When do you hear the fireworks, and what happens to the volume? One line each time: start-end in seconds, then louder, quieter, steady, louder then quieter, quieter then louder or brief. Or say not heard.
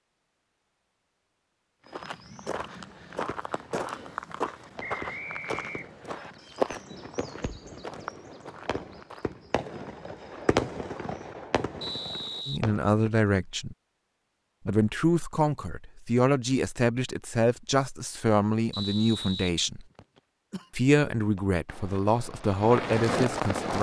2.8-13.1 louder then quieter
21.3-23.7 brief.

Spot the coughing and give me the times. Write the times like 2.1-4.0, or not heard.
20.5-21.1.